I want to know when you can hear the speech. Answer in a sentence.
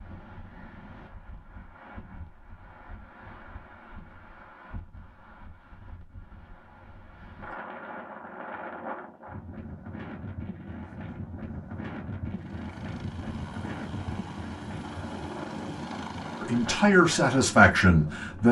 The speech can be heard from 16.4 to 18.4 s.